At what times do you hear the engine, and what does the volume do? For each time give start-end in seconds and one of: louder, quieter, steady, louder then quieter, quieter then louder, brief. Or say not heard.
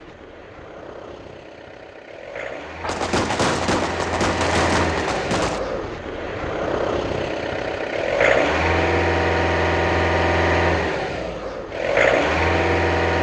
0.0-13.1 louder.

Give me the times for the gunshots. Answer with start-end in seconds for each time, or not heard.
2.8-5.6.